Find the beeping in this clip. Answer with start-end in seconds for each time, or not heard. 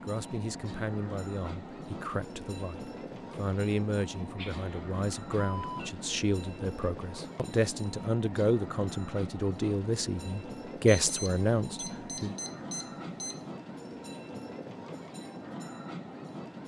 4.3-6.0, 10.8-13.4.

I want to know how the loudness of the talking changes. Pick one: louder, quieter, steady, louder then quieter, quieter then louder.
louder.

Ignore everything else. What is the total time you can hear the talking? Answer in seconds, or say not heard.
12 s.